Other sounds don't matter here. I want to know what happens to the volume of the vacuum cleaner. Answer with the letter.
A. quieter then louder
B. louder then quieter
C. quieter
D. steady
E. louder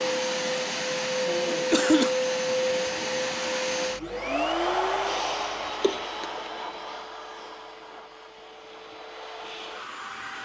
C.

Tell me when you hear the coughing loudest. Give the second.
2 s.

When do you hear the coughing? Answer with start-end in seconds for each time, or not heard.
1.5-2.1, 5.8-6.4.